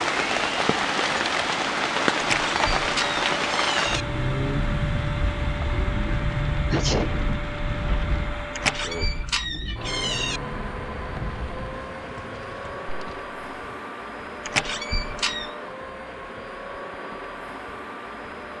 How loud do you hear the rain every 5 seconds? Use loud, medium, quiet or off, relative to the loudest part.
loud, medium, quiet, off.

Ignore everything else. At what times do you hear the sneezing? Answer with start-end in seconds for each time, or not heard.
6.7-7.3.